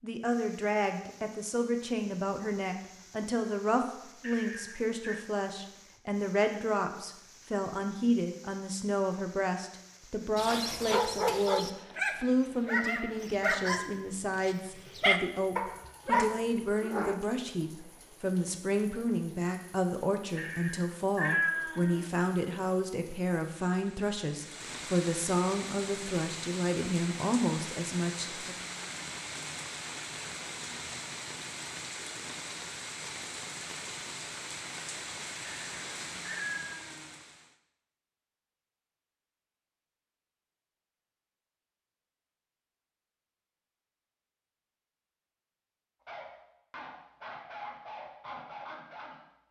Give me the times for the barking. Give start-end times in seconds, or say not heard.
10.3-17.1, 46.0-49.4.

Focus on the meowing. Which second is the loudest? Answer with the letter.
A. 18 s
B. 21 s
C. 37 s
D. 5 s
B.